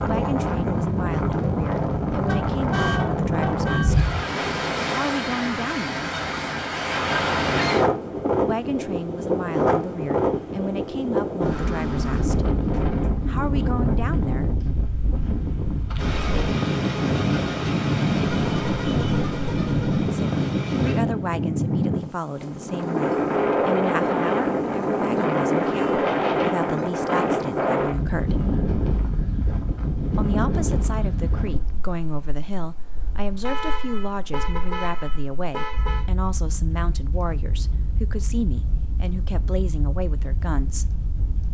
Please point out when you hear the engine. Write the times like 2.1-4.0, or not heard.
15.9-21.2.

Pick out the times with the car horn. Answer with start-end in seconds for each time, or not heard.
2.1-4.0, 18.4-20.1, 33.5-36.0.